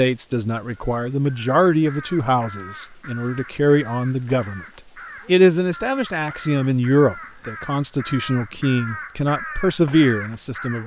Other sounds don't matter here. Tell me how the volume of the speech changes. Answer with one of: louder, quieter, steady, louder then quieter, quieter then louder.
steady.